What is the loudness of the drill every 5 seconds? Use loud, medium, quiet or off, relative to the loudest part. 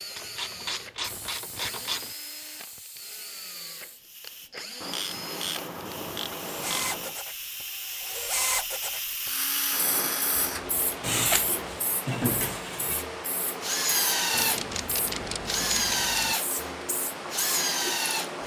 quiet, medium, loud, loud.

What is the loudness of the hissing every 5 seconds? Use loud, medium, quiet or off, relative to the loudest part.
medium, loud, loud, loud.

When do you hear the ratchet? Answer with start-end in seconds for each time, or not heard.
0.1-2.1, 4.8-7.2, 10.5-11.8, 14.3-16.4.